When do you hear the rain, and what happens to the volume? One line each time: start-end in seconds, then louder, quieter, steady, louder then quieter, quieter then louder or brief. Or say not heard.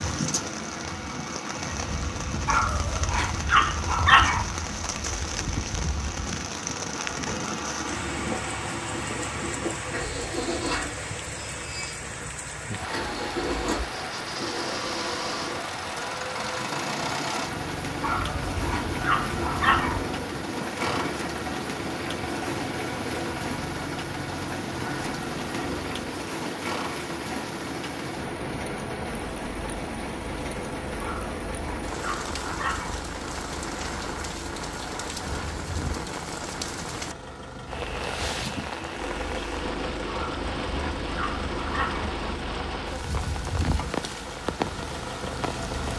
0.0-45.9 steady.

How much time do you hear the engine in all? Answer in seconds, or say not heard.
46 s.